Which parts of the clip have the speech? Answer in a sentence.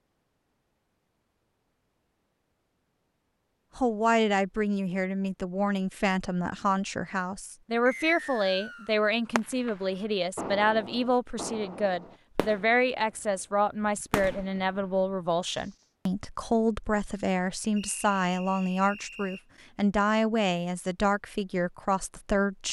The speech can be heard from 3.8 to 22.6 s.